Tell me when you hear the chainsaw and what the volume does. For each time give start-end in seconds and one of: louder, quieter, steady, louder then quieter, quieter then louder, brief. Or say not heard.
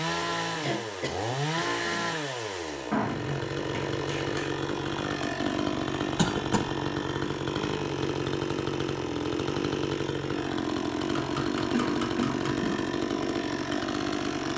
0.0-14.5 steady.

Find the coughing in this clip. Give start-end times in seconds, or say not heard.
0.6-2.1, 6.2-6.7, 11.7-12.9.